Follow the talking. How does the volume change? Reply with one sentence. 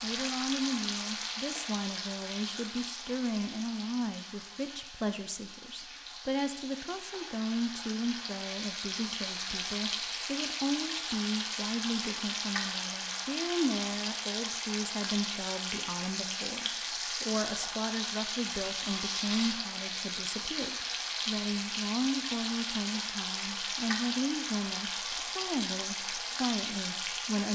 The loudness of the talking stays about the same.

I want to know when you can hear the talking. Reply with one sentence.
The talking can be heard from 0.0 to 27.5 s.